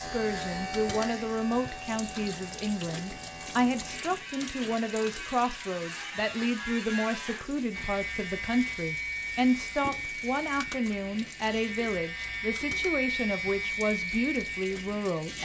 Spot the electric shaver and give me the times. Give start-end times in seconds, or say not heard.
0.0-15.4.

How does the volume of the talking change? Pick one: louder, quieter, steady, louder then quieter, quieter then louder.
steady.